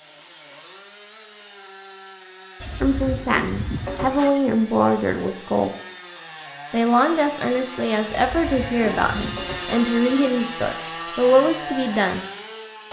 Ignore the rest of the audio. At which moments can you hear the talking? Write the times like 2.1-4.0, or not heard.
2.8-5.8, 6.7-12.2.